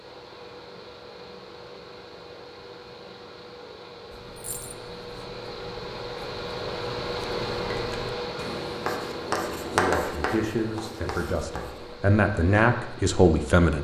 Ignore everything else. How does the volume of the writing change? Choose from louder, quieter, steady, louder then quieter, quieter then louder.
louder then quieter.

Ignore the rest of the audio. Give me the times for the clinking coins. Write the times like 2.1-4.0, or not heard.
4.3-4.8.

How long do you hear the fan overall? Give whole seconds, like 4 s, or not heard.
14 s.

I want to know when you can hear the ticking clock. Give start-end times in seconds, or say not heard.
not heard.